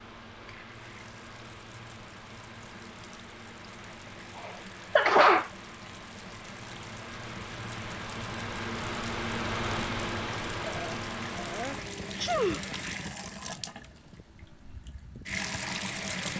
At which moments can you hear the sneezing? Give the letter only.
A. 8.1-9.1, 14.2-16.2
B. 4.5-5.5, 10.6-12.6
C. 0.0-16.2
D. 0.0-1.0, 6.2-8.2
B.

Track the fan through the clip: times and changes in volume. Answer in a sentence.
The fan can be heard from 0.0 to 16.2 s, getting louder then quieter.